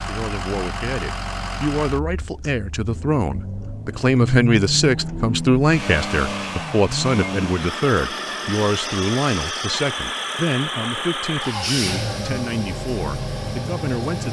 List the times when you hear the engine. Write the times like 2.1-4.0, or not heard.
0.0-14.2.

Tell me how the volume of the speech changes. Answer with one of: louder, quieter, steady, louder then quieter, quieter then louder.
louder then quieter.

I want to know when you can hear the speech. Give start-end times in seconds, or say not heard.
0.1-14.2.